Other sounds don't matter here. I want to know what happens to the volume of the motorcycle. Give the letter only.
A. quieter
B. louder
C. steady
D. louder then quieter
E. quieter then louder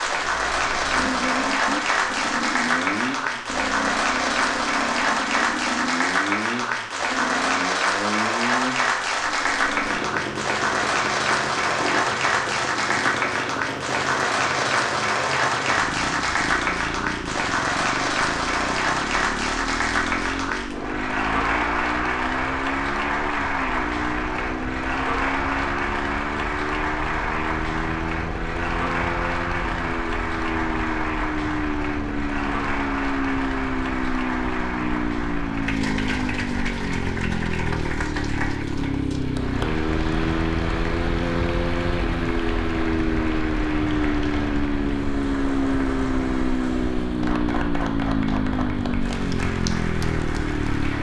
B.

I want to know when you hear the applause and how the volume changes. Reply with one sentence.
The applause can be heard from 0.0 to 50.9 s, getting quieter.